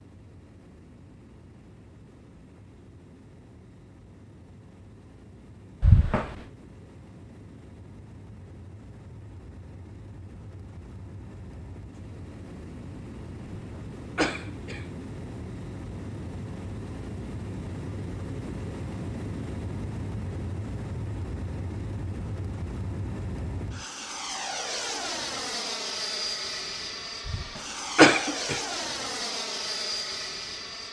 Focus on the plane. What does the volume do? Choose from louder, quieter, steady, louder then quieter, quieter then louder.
louder.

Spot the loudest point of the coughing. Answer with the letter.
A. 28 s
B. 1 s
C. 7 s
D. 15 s
A.